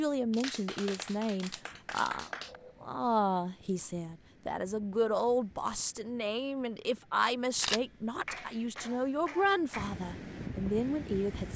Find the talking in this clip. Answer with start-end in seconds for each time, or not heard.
0.0-11.5.